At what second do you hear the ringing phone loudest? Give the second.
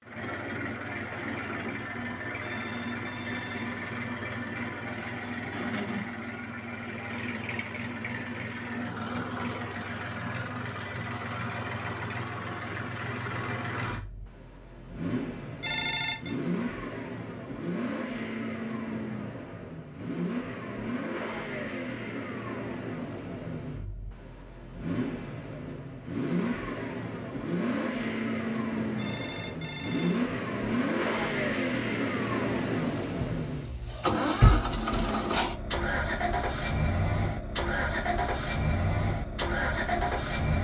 16 s.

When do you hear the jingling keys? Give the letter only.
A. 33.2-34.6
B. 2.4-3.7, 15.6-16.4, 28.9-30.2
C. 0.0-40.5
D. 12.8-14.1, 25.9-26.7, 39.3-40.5
A.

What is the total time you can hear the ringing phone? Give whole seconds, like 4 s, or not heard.
3 s.